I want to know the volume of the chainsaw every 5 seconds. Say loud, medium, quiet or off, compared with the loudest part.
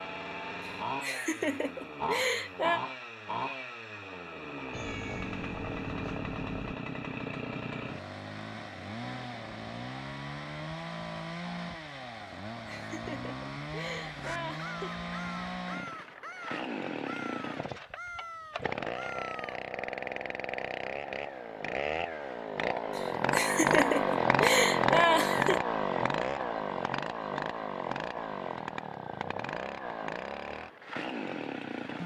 medium, medium, medium, medium, loud, loud, medium.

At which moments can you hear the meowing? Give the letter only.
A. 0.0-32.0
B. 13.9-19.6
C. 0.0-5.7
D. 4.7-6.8
D.